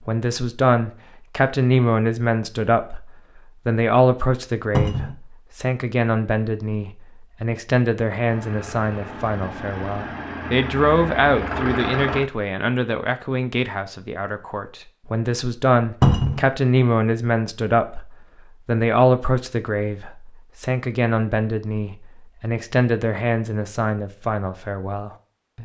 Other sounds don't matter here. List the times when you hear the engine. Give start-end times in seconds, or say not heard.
8.2-12.2.